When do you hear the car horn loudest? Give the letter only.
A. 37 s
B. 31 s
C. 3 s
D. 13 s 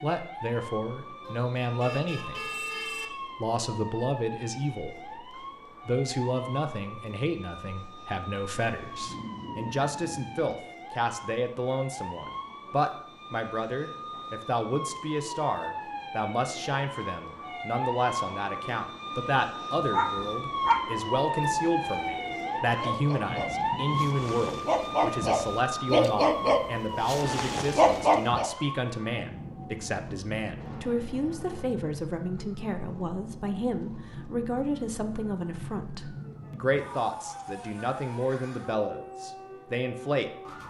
C.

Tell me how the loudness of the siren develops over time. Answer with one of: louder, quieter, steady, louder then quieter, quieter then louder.
louder then quieter.